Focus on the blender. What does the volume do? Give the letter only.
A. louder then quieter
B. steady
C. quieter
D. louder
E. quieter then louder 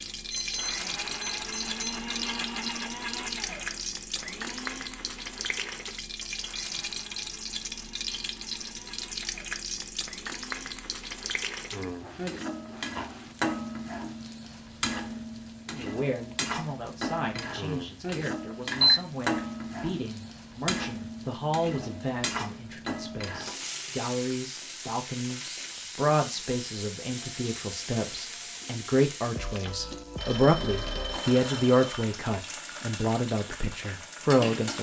C.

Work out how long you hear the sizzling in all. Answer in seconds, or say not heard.
35 s.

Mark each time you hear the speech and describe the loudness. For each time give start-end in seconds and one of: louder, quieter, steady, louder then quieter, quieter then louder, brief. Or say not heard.
15.7-34.7 louder.